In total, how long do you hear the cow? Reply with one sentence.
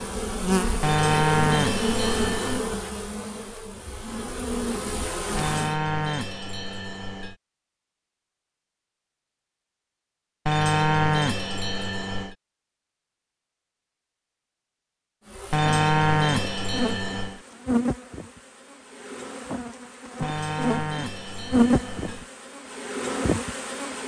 You can hear the cow for 10 seconds altogether.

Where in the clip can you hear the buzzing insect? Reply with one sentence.
You can hear the buzzing insect from 0.0 to 5.8 s and from 15.2 to 24.0 s.